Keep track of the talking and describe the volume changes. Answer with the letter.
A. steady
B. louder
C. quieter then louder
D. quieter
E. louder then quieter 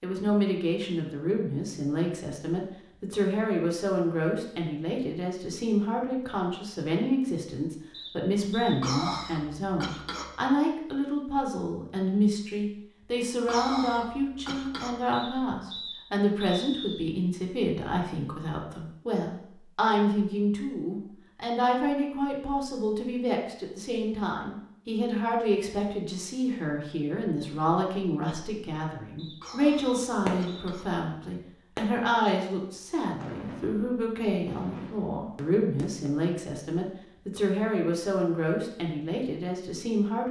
A.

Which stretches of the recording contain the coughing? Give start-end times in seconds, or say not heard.
8.8-10.3, 13.4-15.1, 29.4-30.9.